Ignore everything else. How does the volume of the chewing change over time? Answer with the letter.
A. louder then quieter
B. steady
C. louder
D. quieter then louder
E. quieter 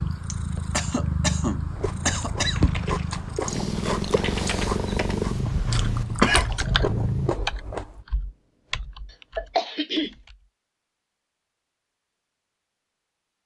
B.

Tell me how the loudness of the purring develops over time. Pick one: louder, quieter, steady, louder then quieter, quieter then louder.
steady.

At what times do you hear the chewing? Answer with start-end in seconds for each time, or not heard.
1.5-8.1.